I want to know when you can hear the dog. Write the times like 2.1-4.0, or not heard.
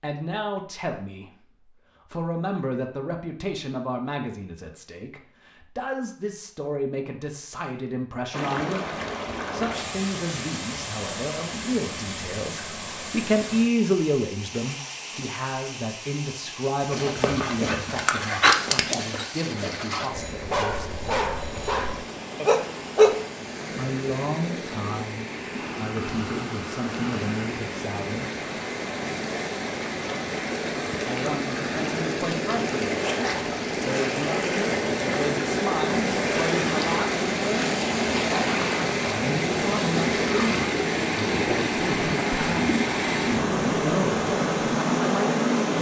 16.9-23.1.